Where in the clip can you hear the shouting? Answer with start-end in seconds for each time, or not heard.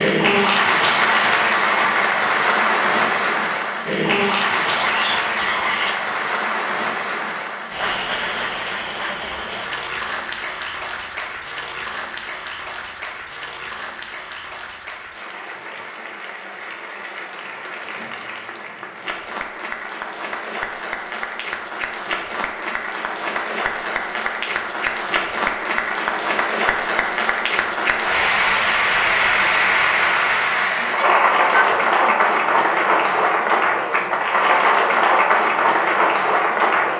4.8-6.0, 30.8-32.2.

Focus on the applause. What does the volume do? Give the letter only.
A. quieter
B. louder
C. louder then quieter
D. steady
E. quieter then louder
E.